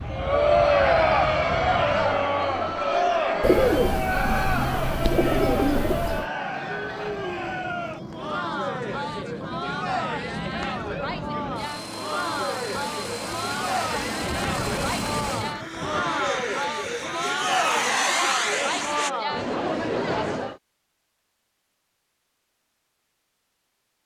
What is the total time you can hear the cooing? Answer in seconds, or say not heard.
3 s.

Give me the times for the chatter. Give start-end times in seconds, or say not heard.
0.1-20.6.